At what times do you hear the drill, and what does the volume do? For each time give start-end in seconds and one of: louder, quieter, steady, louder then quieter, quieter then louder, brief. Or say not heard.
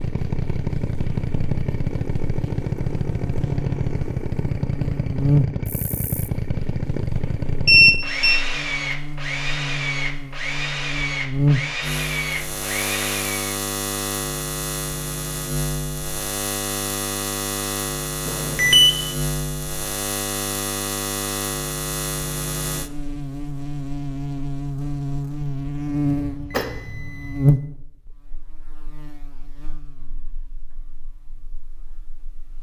0.0-13.6 steady.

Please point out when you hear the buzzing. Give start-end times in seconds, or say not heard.
0.0-32.5.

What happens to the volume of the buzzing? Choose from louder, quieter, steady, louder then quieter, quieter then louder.
steady.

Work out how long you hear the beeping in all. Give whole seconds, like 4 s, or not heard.
3 s.